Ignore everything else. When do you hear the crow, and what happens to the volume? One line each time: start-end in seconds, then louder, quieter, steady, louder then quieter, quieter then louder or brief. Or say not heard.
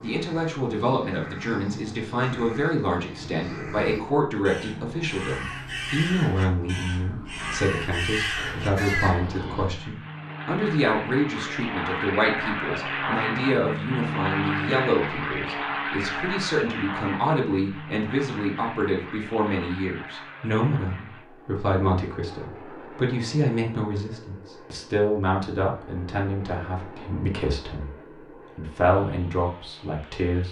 0.0-9.2 louder.